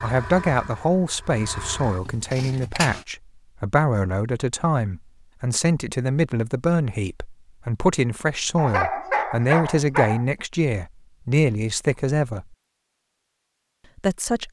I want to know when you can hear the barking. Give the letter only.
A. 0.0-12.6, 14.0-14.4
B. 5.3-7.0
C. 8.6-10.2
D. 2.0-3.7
C.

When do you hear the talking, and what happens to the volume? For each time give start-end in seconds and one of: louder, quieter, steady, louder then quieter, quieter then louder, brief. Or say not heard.
0.0-12.6 steady
14.0-14.4 brief.